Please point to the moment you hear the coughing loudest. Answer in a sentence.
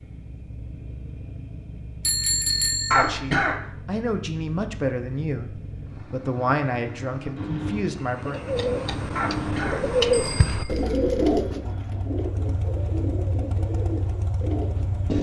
The volume of the coughing peaks at 3 seconds.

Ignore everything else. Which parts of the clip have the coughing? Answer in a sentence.
You can hear the coughing from 2.9 to 3.6 s and from 9.2 to 9.8 s.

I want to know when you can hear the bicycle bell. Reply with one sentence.
You can hear the bicycle bell from 2.0 to 3.1 s and from 10.1 to 10.7 s.